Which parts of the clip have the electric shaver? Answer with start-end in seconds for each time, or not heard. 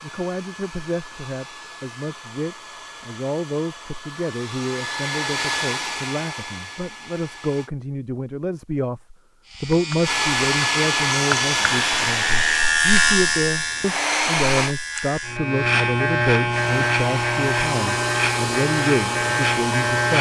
9.4-20.1.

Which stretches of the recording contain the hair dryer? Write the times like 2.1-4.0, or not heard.
0.0-7.7, 10.0-14.8, 16.4-20.1.